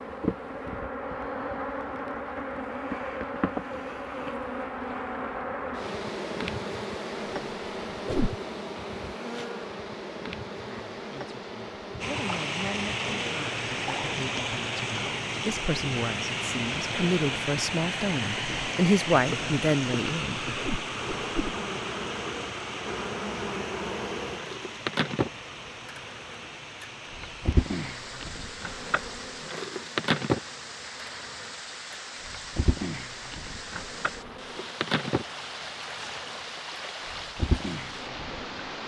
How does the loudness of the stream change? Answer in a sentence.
The volume of the stream goes down.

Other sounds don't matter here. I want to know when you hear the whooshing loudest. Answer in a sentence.
The loudest moment of the whooshing is at 8 seconds.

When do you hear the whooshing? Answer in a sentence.
You can hear the whooshing from 7.2 to 8.3 s and from 20.6 to 21.6 s.